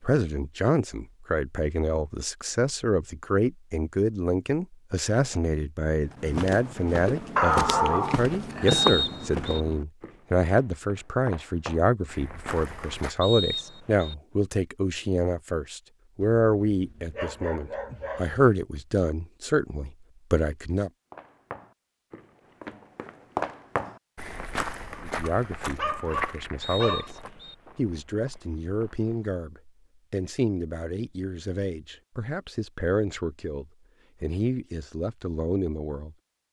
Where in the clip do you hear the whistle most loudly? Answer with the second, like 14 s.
9 s.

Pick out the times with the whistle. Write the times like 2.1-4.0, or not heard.
8.7-9.6, 13.2-14.2, 26.6-27.6.